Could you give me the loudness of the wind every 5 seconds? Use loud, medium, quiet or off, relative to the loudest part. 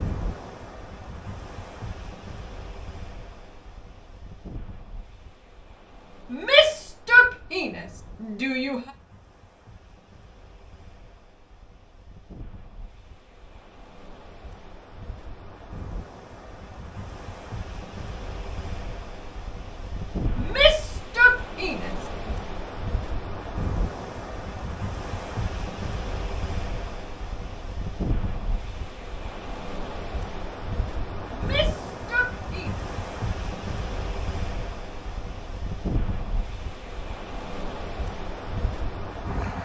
medium, quiet, quiet, medium, loud, loud, loud, loud.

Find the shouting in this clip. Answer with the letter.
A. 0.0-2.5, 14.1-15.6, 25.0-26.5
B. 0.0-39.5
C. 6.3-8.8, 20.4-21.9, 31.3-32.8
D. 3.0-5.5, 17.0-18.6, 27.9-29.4
C.